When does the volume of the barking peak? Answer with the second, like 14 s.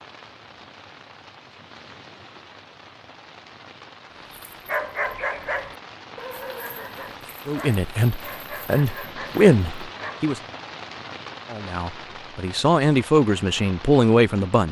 5 s.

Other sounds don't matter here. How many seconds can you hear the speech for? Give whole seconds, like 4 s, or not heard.
6 s.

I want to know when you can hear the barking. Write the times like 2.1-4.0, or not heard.
4.3-10.3.